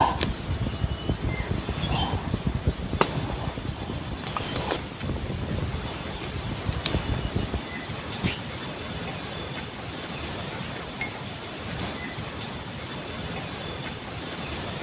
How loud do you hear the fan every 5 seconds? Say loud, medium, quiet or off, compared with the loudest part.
loud, loud, off.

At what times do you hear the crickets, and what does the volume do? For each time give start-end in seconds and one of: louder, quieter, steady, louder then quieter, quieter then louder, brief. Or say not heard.
0.0-14.7 steady.